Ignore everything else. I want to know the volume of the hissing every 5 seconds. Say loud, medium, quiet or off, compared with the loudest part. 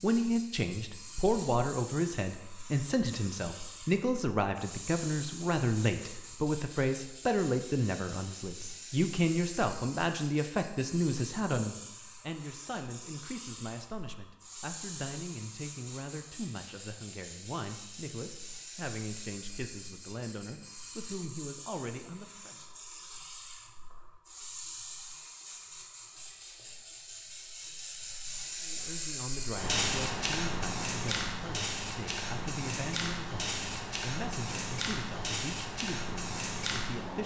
medium, medium, medium, medium, medium, loud, loud, loud.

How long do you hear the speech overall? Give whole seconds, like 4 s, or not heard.
31 s.